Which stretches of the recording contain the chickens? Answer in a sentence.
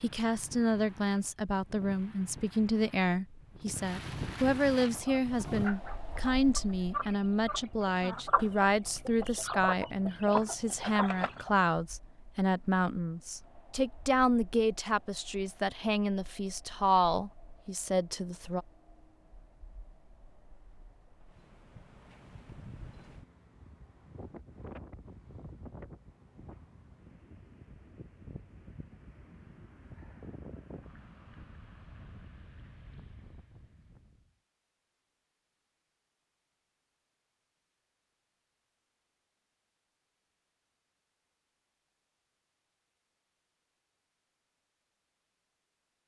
You can hear the chickens from 4.8 to 11.6 s.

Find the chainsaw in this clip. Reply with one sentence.
You can't hear the chainsaw here.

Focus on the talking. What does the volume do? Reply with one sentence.
The volume of the talking stays about the same.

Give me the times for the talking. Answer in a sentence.
The talking can be heard from 0.0 to 18.6 s.